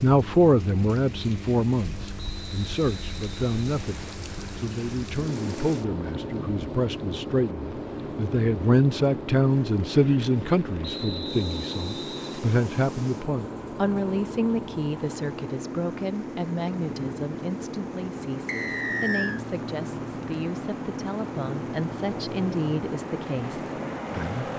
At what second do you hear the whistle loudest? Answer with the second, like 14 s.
19 s.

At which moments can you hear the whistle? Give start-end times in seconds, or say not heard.
2.1-4.2, 10.8-12.3, 18.4-19.4.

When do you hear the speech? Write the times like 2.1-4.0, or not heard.
0.0-24.4.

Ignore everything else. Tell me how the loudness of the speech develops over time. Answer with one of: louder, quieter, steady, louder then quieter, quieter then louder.
quieter.